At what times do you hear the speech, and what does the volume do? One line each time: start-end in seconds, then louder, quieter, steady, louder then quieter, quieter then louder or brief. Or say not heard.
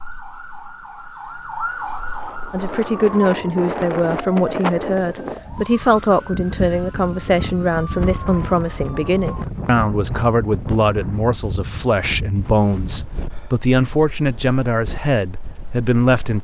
2.5-16.3 steady.